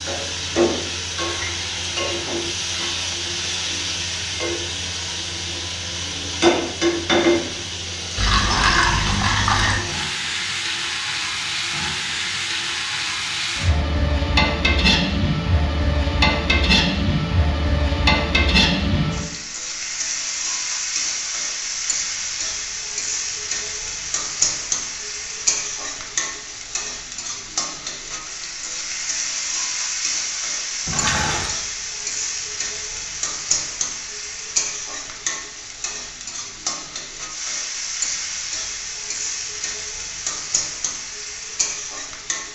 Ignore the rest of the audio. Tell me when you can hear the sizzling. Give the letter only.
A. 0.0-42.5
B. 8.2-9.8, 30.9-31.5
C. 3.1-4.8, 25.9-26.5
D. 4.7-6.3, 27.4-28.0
A.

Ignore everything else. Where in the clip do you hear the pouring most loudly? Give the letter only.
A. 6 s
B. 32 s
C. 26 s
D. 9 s
D.